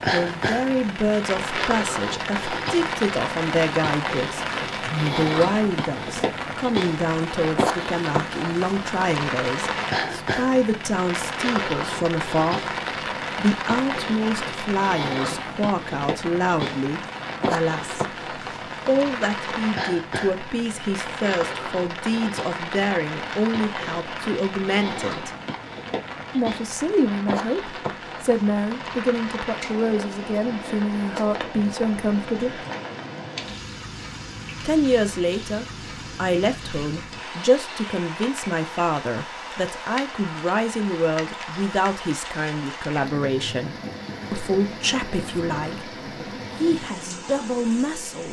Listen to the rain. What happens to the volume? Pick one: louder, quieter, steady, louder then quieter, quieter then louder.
quieter.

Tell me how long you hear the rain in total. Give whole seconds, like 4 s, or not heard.
48 s.